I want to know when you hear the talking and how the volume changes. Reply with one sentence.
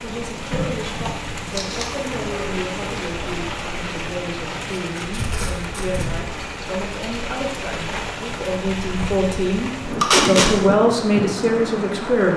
You can hear the talking from 0.0 to 12.3 s, getting louder.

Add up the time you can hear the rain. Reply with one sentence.
You can hear the rain for 12 seconds altogether.